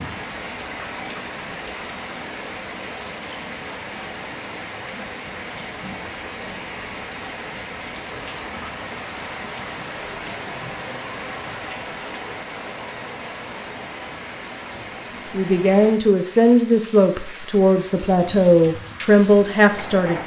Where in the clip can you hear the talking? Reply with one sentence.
You can hear the talking from 15.3 to 20.2 s.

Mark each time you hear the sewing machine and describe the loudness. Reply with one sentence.
The sewing machine can't be heard in this clip.